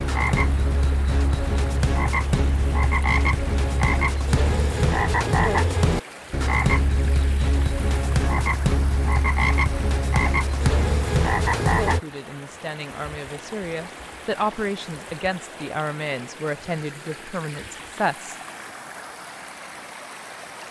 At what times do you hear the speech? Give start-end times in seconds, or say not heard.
11.8-18.4.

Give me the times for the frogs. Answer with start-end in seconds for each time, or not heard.
0.0-12.0.